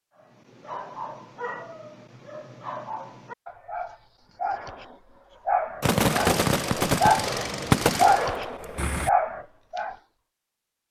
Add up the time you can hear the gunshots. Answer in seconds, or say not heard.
3 s.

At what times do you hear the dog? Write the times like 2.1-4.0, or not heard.
0.1-7.3, 8.0-9.9.